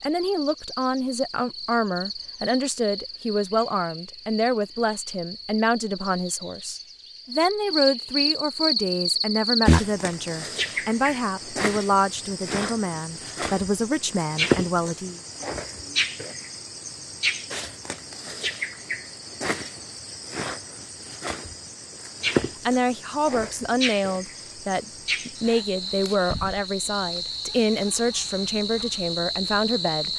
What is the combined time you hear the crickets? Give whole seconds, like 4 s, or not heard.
30 s.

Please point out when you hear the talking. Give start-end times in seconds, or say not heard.
0.0-15.2, 22.6-30.1.